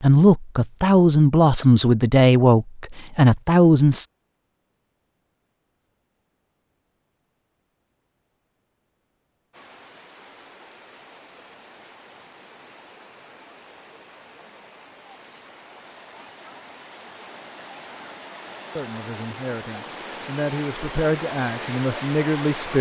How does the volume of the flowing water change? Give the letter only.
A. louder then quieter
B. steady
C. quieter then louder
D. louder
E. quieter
D.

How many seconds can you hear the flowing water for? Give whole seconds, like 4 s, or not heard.
13 s.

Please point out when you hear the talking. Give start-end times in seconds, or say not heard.
0.0-4.0, 18.8-22.7.